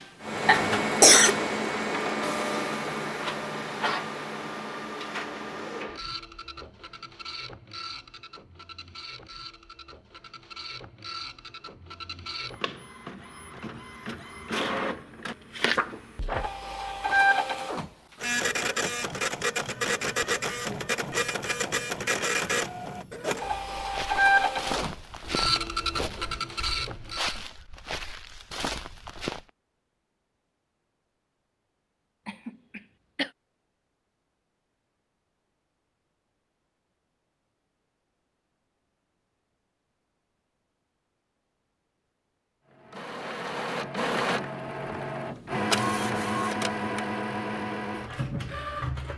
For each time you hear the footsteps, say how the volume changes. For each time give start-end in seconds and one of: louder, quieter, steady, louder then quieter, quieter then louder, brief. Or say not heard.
23.8-29.4 quieter then louder.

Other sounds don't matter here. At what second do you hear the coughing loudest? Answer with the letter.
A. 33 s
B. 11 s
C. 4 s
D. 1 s
D.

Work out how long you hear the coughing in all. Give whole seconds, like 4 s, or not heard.
2 s.